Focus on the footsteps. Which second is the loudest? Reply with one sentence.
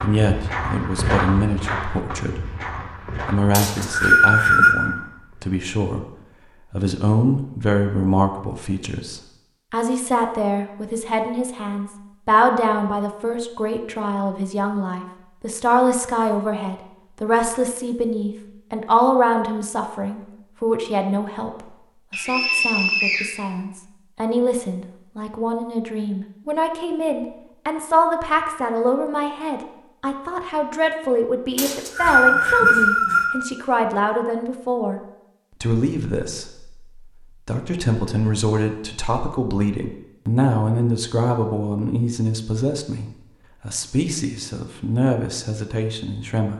The loudest moment of the footsteps is at 1 second.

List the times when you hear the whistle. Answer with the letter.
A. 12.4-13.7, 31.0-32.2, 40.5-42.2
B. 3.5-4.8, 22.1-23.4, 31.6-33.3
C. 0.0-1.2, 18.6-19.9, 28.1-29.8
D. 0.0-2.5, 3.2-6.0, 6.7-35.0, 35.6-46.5
B.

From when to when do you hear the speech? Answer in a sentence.
The speech can be heard from 0.0 to 2.5 s, from 3.2 to 6.0 s, from 6.7 to 35.0 s and from 35.6 to 46.5 s.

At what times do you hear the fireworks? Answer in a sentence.
You can't hear the fireworks here.